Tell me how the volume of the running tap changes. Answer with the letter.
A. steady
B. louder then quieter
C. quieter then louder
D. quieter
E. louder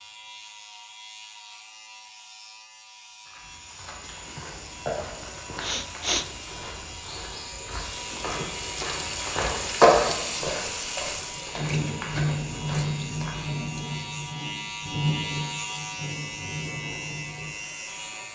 B.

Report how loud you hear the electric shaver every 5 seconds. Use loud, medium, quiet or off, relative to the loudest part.
medium, medium, loud, loud.